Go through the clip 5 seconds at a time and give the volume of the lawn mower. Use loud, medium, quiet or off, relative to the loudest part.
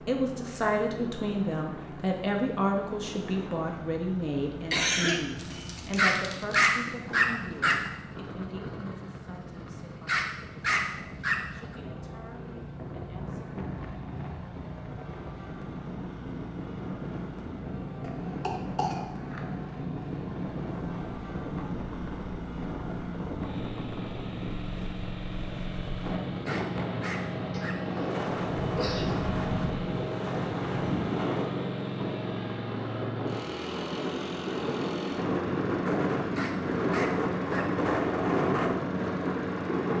medium, medium, medium, medium, medium, loud, loud, loud.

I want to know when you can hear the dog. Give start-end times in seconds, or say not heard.
6.0-7.8, 10.1-11.3, 26.4-27.8, 36.4-37.6.